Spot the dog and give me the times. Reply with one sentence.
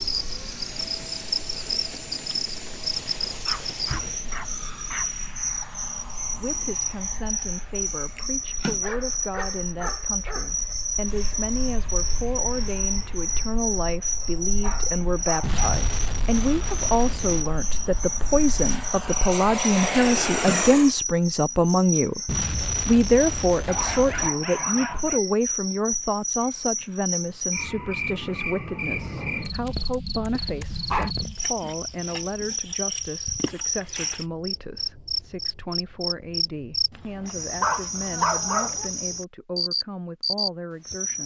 The dog can be heard from 3.5 to 5.2 s, from 8.5 to 10.8 s, from 14.6 to 15.7 s, from 23.6 to 25.2 s, from 29.1 to 31.1 s and from 37.0 to 38.9 s.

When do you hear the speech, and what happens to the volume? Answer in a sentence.
The speech can be heard from 6.3 to 41.2 s, getting louder then quieter.